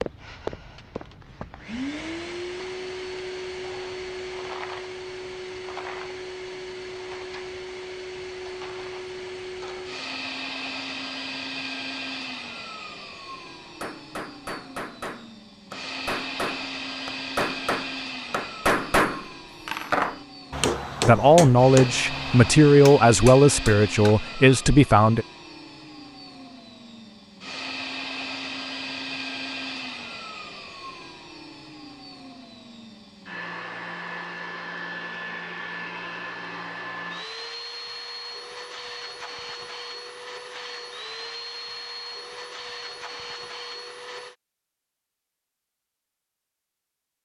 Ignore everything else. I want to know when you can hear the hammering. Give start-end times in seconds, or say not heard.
13.7-24.1.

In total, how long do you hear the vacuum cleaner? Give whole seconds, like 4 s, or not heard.
44 s.